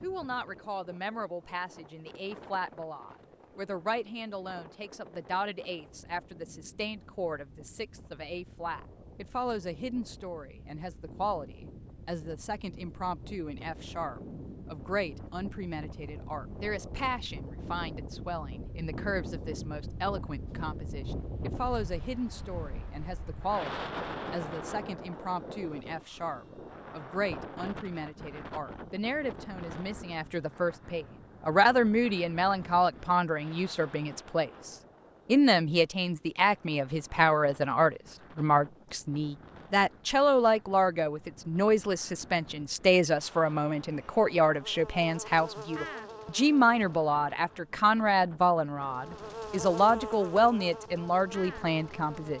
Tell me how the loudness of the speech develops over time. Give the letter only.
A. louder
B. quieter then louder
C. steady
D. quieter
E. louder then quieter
A.